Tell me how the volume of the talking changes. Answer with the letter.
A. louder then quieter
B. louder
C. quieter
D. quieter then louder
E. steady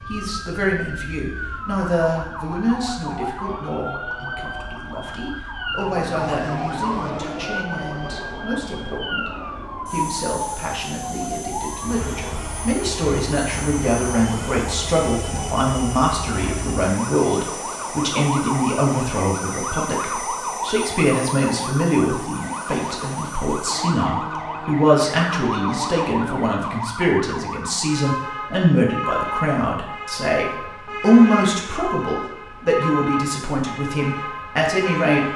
B.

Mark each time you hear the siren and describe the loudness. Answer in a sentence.
You can hear the siren from 0.0 to 35.3 s, at a steady volume.